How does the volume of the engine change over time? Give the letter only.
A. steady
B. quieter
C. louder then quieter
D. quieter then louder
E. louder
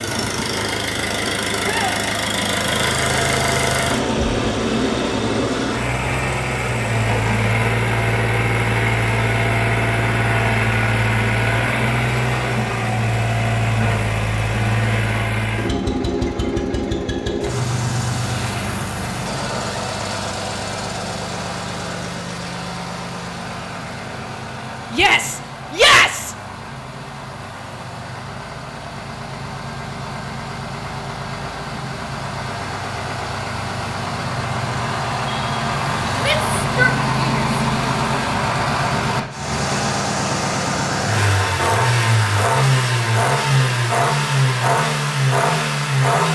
D.